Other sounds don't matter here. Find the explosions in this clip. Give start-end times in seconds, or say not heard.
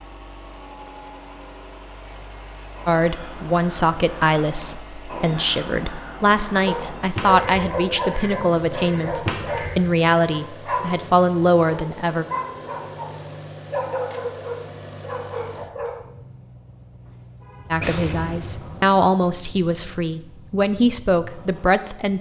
17.8-18.9.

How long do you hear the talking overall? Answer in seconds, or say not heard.
14 s.